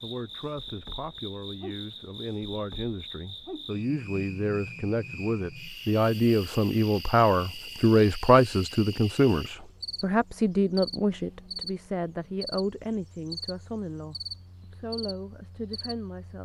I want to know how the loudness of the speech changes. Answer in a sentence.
The volume of the speech goes up, then down.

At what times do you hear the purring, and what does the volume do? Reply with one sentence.
You can't hear the purring here.